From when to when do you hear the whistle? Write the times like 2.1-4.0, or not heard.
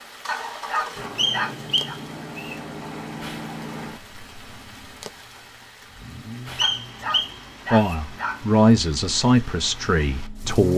1.1-2.6, 6.5-8.0.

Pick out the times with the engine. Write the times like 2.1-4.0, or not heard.
0.2-10.7.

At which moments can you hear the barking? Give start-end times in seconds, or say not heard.
0.2-1.9, 6.6-8.4.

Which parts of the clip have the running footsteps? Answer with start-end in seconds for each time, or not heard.
not heard.